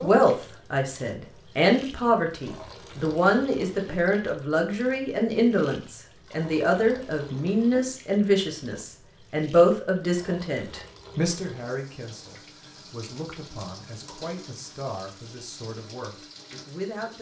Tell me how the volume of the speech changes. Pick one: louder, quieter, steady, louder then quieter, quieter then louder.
quieter.